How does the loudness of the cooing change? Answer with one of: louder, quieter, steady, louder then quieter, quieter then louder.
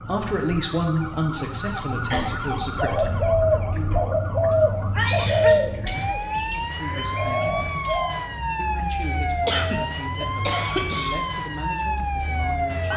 quieter then louder.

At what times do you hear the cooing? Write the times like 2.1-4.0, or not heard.
2.8-8.2.